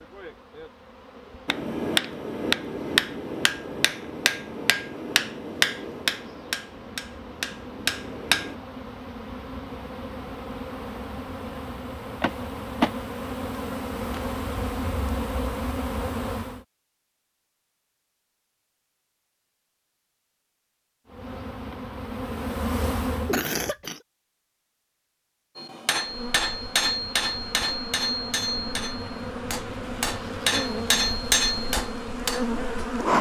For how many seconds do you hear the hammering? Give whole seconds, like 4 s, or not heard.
14 s.